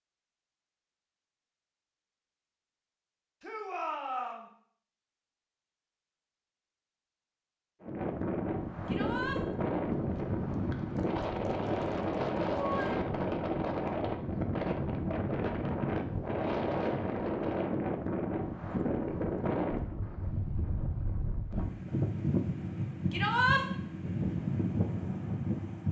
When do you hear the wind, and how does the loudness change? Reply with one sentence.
The wind can be heard from 7.8 to 25.8 s, at a steady volume.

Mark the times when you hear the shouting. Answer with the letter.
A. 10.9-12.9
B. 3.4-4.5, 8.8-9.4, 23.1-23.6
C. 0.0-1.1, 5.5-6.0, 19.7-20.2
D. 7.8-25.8
B.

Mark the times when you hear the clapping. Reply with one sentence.
You can hear the clapping from 10.9 to 12.9 s.